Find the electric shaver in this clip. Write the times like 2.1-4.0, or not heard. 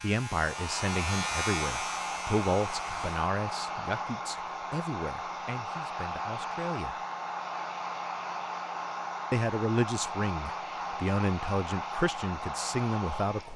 0.0-3.3.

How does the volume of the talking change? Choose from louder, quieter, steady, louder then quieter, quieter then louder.
quieter then louder.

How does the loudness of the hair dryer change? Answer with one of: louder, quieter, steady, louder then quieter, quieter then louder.
steady.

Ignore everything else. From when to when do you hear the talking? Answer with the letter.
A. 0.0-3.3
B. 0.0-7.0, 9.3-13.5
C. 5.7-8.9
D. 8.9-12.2
B.